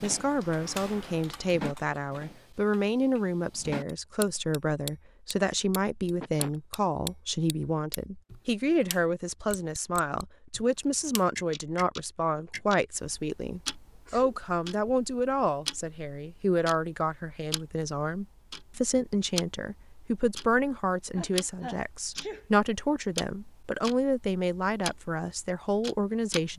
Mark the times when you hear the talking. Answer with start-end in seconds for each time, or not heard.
0.0-26.5.